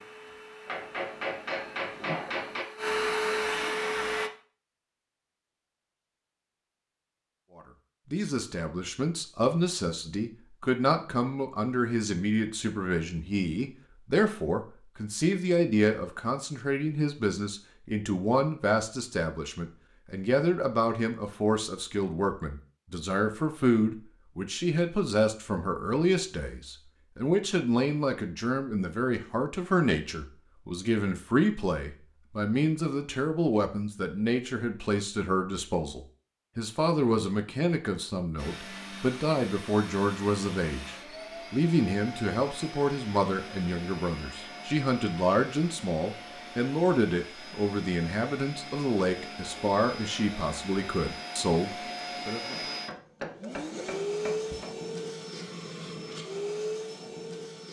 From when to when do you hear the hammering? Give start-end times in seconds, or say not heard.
0.7-2.6, 52.5-54.7.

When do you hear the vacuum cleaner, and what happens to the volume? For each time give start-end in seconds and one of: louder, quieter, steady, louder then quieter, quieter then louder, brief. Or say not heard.
0.0-4.3 louder
38.4-57.6 louder.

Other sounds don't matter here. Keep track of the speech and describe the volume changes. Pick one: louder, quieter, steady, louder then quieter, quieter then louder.
steady.